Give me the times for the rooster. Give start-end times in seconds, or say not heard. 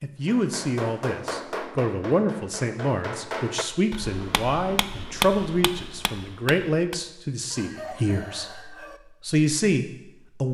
7.5-9.0.